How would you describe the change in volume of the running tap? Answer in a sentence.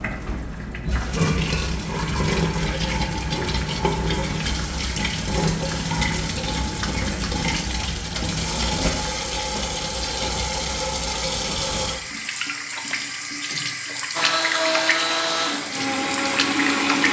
The volume of the running tap stays about the same.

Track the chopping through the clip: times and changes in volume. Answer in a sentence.
You can't hear the chopping here.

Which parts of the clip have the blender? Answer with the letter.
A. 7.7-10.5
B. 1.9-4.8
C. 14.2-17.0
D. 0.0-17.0
C.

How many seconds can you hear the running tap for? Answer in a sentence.
The running tap can be heard for 17 seconds in total.